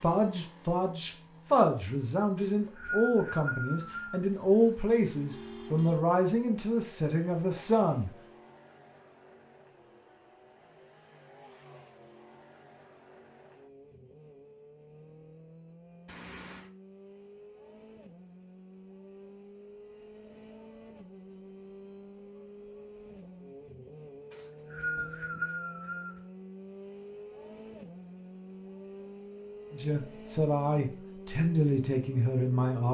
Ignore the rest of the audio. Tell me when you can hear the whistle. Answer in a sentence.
The whistle can be heard from 2.4 to 4.2 s and from 24.3 to 26.2 s.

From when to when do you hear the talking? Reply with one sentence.
The talking can be heard from 0.0 to 8.1 s and from 29.7 to 32.9 s.